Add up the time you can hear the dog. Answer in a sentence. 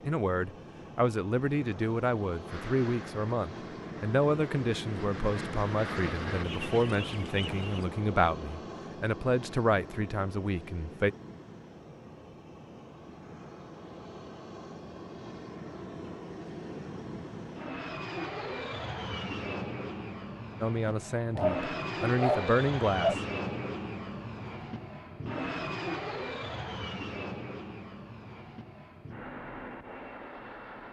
You can hear the dog for 2 seconds altogether.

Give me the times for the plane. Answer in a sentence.
You can hear the plane from 0.0 to 30.8 s.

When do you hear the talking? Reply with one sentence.
The talking can be heard from 0.0 to 11.2 s and from 20.6 to 23.1 s.